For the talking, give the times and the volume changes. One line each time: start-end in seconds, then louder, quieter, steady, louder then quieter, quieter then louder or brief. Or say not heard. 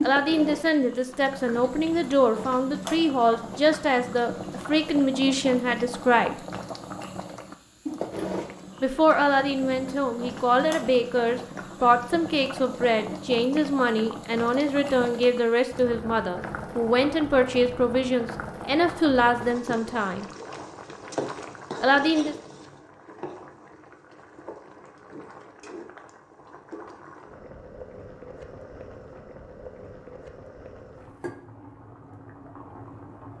0.0-6.3 steady
8.8-20.2 steady
21.8-22.4 brief.